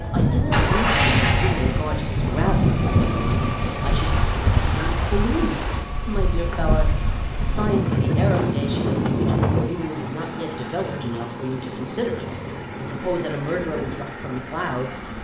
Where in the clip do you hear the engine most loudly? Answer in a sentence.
The volume of the engine peaks at 1 second.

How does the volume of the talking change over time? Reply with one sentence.
The volume of the talking stays about the same.